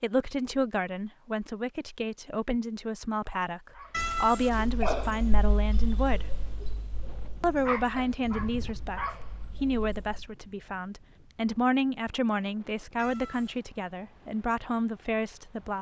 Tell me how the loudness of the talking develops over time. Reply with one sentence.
The loudness of the talking stays about the same.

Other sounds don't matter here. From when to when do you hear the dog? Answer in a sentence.
You can hear the dog from 3.7 to 10.2 s.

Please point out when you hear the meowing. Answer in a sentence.
You can hear the meowing from 3.9 to 4.7 s and from 12.9 to 13.7 s.